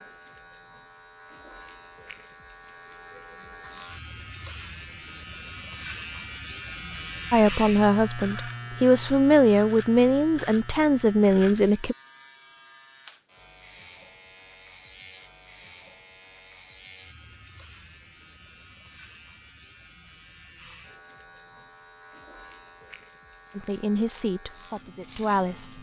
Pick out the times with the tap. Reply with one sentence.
The tap can't be heard in this clip.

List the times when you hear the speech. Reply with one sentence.
The speech can be heard from 7.3 to 11.9 s and from 23.6 to 25.7 s.